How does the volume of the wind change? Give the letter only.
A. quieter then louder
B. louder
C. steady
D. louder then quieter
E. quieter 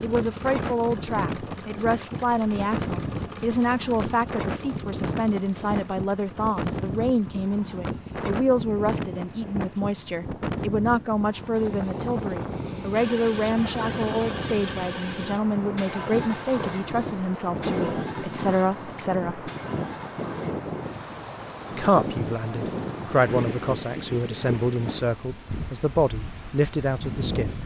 C.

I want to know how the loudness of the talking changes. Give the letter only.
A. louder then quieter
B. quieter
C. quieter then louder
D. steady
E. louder
D.